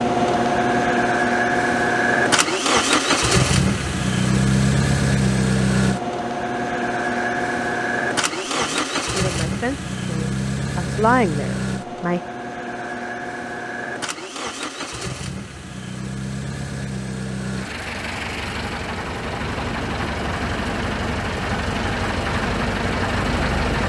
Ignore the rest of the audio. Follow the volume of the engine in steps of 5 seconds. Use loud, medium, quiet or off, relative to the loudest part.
loud, loud, medium, medium, medium.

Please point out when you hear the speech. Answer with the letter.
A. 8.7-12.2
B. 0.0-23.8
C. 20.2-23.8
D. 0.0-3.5
A.